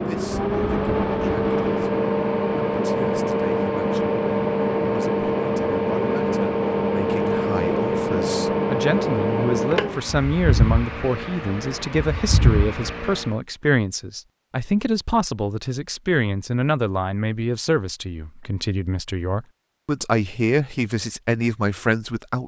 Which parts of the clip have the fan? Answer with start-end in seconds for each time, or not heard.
0.0-13.3.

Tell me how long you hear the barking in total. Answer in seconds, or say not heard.
not heard.